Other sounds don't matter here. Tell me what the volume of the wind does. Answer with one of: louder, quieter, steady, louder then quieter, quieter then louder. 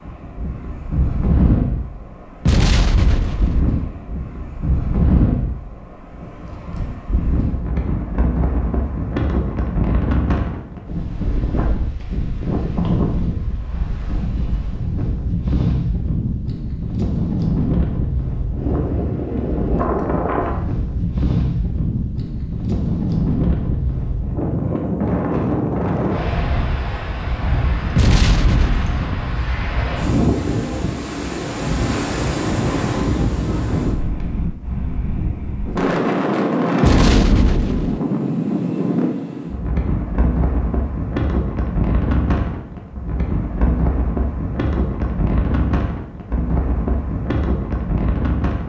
steady.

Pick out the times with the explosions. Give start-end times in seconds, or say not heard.
2.5-3.6, 27.9-29.1, 36.8-38.0.